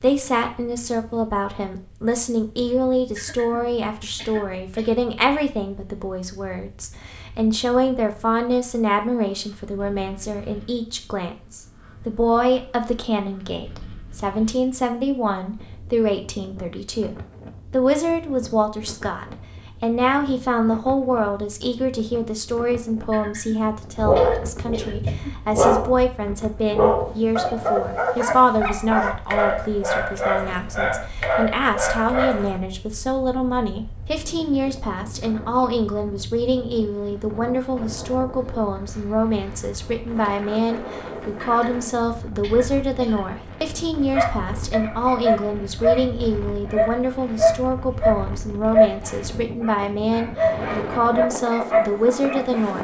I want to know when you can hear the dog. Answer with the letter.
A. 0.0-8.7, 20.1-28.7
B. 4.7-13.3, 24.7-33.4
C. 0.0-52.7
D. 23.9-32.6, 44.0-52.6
D.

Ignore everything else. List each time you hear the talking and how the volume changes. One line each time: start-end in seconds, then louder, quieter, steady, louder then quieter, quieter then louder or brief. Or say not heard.
0.0-52.7 steady.